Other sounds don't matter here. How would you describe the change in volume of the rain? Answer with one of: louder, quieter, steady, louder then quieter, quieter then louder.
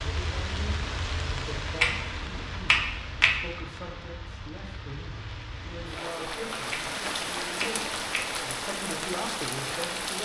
quieter then louder.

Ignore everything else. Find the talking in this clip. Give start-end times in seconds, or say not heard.
0.0-10.2.